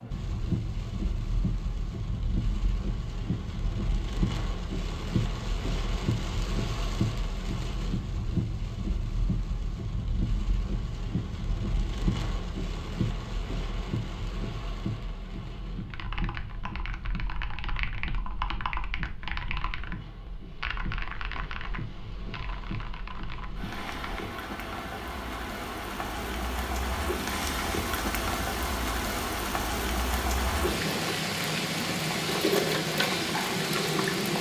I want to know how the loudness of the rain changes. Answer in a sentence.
The volume of the rain goes down, then up.